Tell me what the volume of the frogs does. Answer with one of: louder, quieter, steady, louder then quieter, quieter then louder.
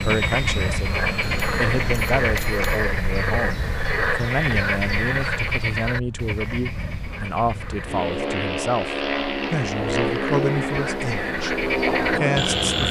quieter then louder.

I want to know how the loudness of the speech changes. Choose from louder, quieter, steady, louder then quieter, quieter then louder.
steady.